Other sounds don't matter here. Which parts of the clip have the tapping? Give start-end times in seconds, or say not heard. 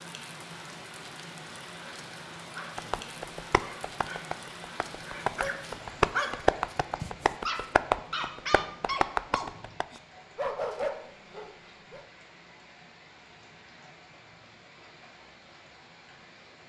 2.8-9.8.